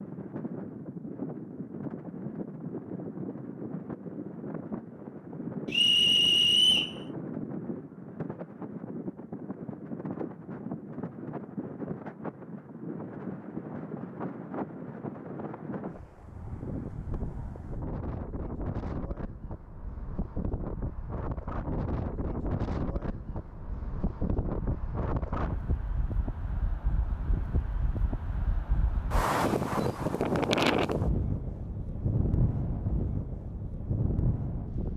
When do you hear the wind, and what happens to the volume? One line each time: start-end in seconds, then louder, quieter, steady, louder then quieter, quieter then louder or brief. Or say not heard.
0.0-34.9 louder.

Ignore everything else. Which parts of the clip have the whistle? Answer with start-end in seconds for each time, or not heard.
5.7-7.0.